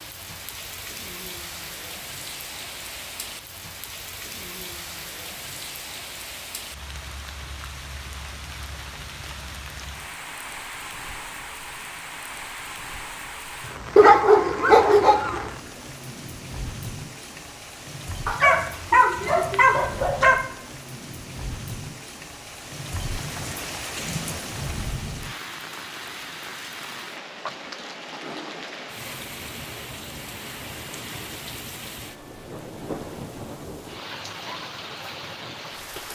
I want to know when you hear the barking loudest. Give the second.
14 s.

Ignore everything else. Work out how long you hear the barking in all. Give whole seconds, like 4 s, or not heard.
4 s.